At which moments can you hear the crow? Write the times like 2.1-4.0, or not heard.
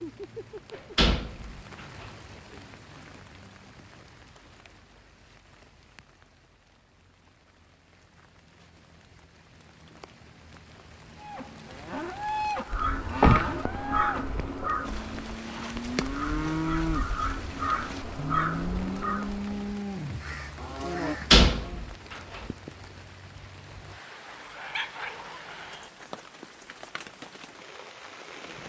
12.7-21.4.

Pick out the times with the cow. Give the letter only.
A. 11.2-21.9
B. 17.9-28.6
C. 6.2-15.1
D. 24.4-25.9
A.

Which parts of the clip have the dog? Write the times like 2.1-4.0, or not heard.
24.4-25.9.